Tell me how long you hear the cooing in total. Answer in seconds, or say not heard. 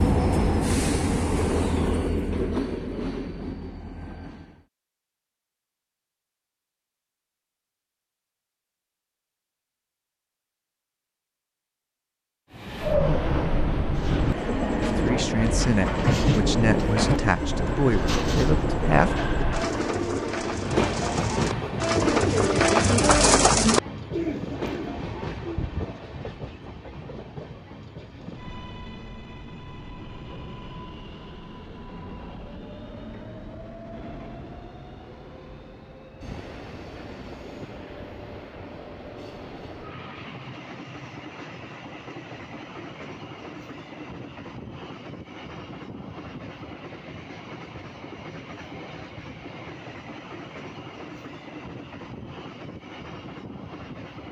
12 s.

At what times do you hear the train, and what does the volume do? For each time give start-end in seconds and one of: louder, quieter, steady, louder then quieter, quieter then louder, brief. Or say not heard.
0.0-4.7 quieter
12.5-54.2 quieter.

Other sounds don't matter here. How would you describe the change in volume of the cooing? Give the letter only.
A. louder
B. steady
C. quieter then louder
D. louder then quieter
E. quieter
A.